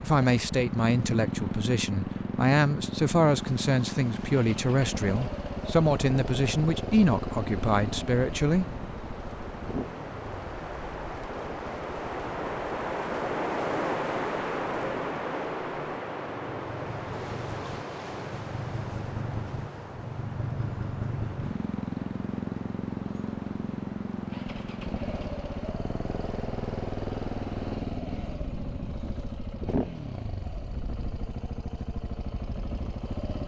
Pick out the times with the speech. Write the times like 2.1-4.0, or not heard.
0.0-8.7.